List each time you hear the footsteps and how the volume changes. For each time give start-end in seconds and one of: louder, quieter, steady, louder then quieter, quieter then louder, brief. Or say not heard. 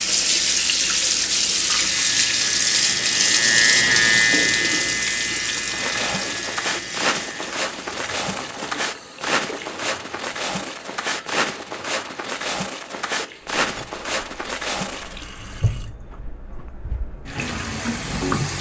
5.7-15.2 steady.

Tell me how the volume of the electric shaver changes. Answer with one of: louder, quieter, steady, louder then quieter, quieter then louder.
louder then quieter.